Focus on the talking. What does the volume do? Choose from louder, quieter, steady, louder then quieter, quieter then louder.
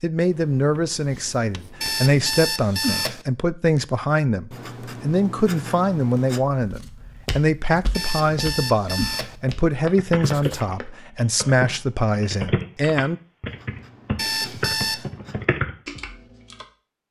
steady.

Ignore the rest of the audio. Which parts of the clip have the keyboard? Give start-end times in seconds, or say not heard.
9.9-16.6.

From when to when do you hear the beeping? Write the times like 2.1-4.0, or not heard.
1.8-3.2, 7.9-9.3, 14.2-15.1.